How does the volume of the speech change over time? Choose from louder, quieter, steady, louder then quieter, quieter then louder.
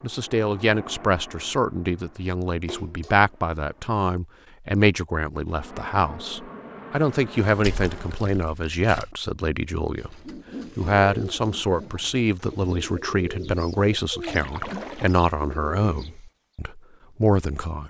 steady.